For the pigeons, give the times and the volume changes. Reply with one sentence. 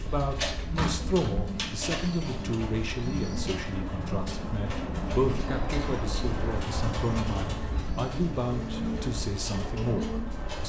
You can hear the pigeons from 0.0 to 10.6 s, at a steady volume.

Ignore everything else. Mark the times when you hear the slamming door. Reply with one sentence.
You can hear the slamming door from 0.8 to 1.4 s and from 8.2 to 9.1 s.